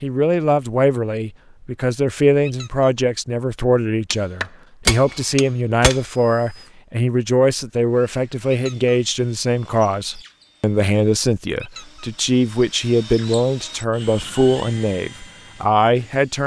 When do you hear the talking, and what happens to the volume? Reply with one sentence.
You can hear the talking from 0.0 to 16.4 s, at a steady volume.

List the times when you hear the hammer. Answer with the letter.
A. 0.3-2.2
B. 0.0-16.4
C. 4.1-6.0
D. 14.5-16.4
C.